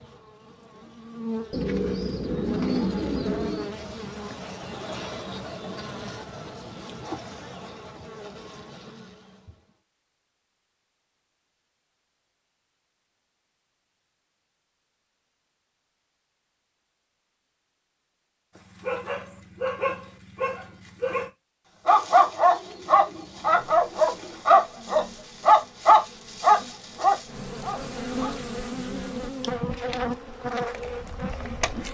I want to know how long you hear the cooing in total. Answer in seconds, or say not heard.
5 s.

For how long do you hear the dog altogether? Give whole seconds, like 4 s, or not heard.
10 s.